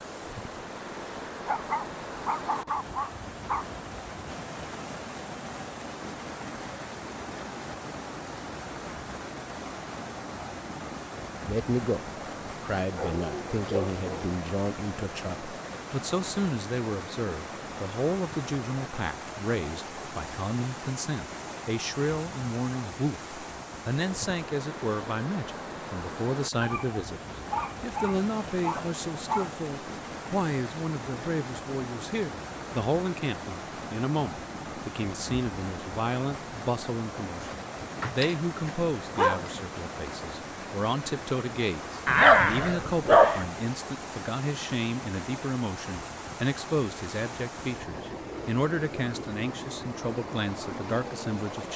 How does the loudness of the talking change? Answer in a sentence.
The volume of the talking stays about the same.